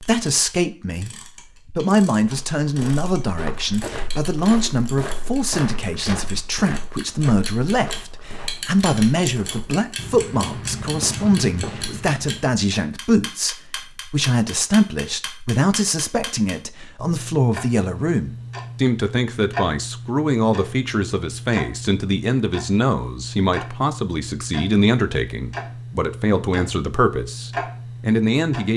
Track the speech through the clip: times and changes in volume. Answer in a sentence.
The speech can be heard from 0.0 to 28.7 s, at a steady volume.